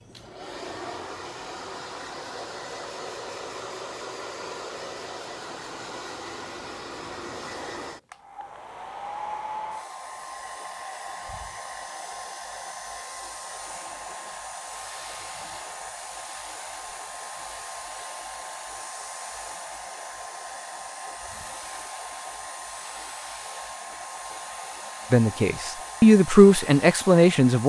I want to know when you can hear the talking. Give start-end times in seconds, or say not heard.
25.1-27.6.